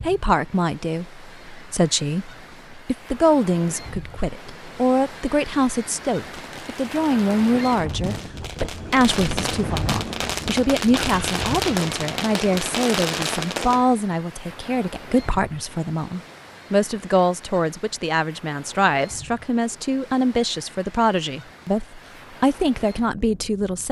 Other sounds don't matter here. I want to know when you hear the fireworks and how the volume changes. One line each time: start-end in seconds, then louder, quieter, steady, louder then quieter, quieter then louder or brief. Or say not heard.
6.3-13.8 louder.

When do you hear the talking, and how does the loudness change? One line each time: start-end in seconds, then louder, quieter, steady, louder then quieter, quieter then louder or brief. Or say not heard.
0.0-23.8 steady.